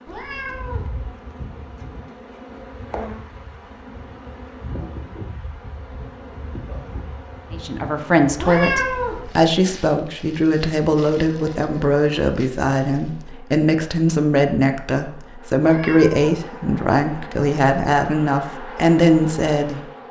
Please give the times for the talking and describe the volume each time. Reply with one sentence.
The talking can be heard from 7.5 to 20.0 s, at a steady volume.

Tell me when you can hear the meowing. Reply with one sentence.
The meowing can be heard from 0.1 to 0.9 s, from 8.3 to 9.2 s and from 15.6 to 16.4 s.